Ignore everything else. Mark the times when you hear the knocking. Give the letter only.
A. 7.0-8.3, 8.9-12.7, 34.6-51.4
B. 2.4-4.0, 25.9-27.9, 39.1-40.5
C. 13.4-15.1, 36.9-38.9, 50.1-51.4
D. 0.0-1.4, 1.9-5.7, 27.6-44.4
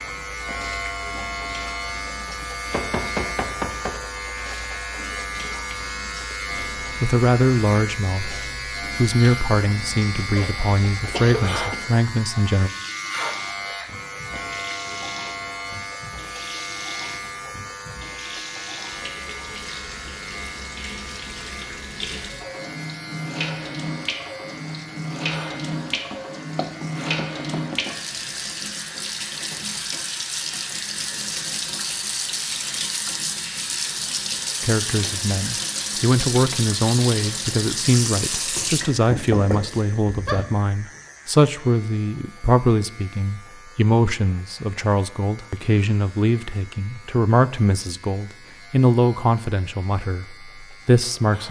B.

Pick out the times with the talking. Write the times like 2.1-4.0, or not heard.
7.0-8.3, 8.9-12.7, 34.6-51.4.